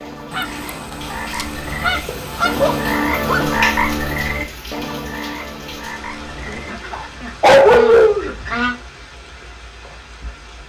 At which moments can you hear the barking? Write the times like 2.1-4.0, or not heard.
2.0-3.5, 6.9-8.3.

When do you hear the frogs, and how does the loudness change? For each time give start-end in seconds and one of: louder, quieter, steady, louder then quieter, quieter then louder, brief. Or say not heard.
0.0-7.2 louder then quieter.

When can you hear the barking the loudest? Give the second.
8 s.